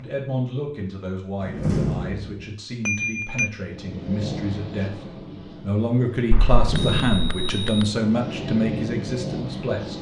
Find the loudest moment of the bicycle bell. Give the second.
3 s.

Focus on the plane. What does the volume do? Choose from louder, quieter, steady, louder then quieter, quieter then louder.
quieter then louder.